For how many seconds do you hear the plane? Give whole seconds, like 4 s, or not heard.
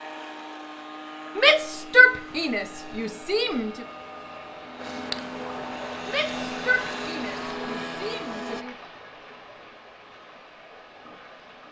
9 s.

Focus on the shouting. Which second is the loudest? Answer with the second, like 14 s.
2 s.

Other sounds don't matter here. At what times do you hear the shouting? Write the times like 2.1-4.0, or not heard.
1.4-3.9, 6.0-8.8.